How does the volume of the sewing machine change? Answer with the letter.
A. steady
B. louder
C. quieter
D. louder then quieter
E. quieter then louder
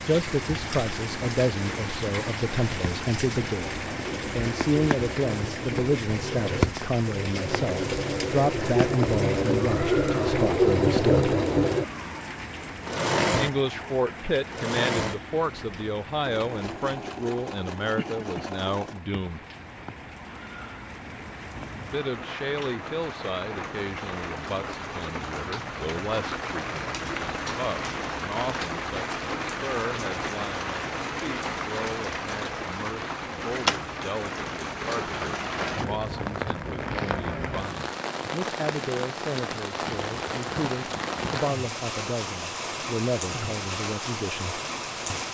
D.